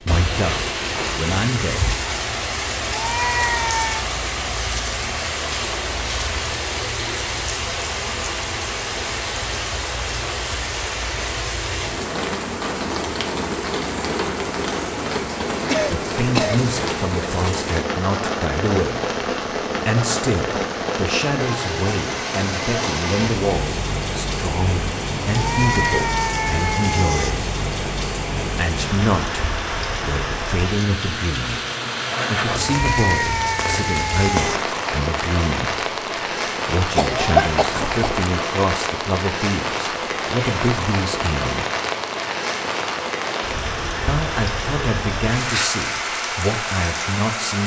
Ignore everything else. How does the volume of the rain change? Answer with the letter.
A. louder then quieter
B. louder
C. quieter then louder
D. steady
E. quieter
D.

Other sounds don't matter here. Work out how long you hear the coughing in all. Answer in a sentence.
You can hear the coughing for 2 seconds altogether.